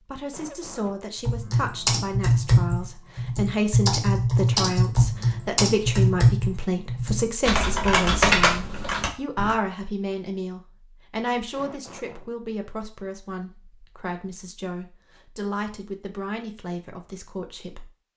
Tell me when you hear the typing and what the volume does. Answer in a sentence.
The typing can be heard from 1.2 to 9.6 s, at a steady volume.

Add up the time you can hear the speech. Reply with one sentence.
The speech can be heard for 18 seconds in total.